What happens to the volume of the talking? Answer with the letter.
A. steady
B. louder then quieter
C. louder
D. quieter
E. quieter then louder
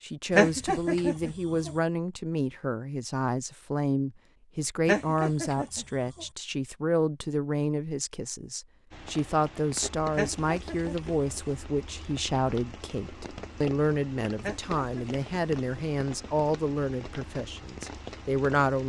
A.